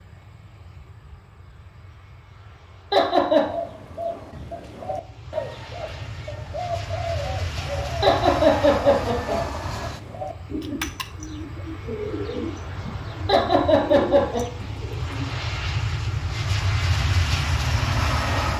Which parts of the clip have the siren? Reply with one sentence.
The siren can't be heard in this clip.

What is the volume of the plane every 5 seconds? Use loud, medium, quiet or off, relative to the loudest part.
quiet, medium, quiet, loud.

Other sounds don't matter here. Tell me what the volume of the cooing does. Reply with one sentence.
The volume of the cooing stays about the same.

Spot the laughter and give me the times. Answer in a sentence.
The laughter can be heard from 2.9 to 3.6 s, from 8.0 to 9.4 s and from 13.2 to 14.4 s.